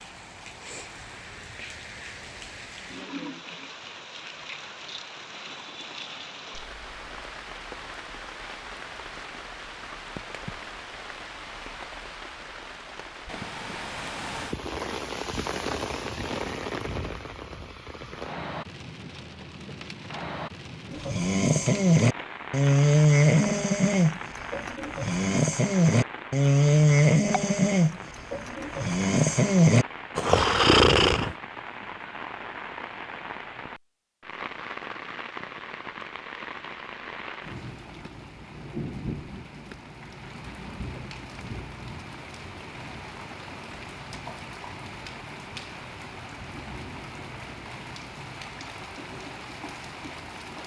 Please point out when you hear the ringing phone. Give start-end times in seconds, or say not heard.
not heard.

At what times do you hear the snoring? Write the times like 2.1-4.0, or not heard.
20.9-31.4.